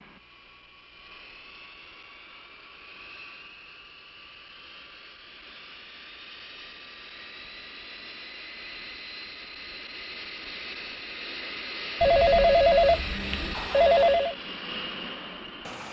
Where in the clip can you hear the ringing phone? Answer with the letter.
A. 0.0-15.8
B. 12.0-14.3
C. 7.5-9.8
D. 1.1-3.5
B.